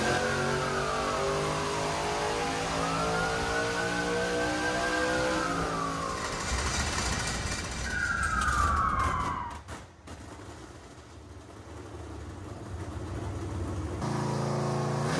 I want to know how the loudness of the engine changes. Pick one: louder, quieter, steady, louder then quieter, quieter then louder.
quieter then louder.